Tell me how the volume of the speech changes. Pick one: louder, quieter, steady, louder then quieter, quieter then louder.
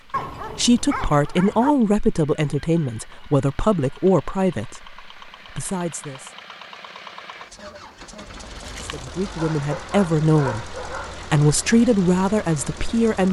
quieter then louder.